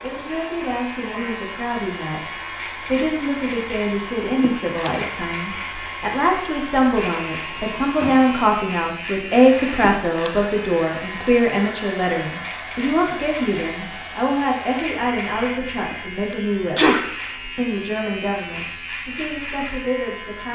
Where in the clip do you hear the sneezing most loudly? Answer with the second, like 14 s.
17 s.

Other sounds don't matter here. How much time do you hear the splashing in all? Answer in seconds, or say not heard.
not heard.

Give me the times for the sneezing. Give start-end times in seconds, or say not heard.
4.4-5.1, 9.8-10.5, 15.9-17.3.